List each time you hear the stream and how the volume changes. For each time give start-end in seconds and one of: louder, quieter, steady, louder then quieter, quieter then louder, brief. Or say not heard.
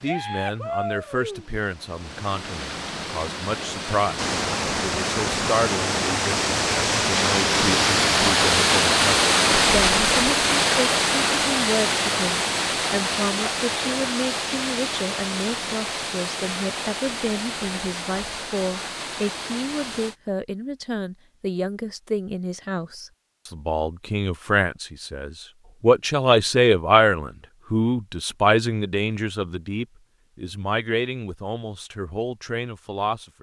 0.0-20.1 louder then quieter.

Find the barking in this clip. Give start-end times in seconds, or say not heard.
not heard.